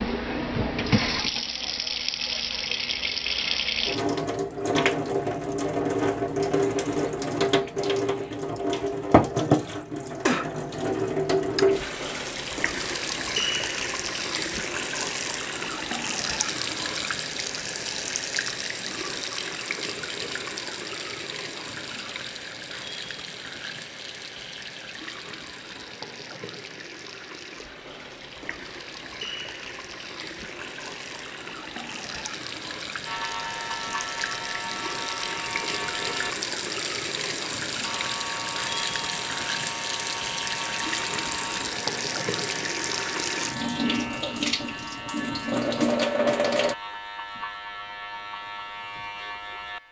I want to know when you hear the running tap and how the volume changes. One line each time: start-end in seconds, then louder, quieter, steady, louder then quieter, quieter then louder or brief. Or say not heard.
0.0-46.8 quieter then louder.